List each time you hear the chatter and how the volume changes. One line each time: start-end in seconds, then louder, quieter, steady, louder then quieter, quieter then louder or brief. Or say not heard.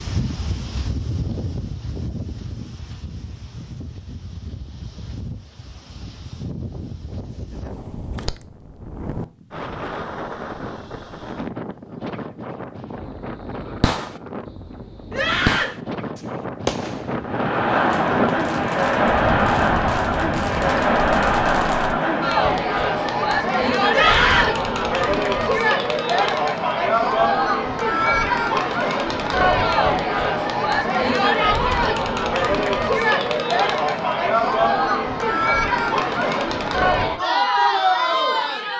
17.2-38.7 steady.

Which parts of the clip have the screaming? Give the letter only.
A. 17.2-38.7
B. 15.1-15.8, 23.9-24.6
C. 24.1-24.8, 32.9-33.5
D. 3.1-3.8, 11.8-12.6
B.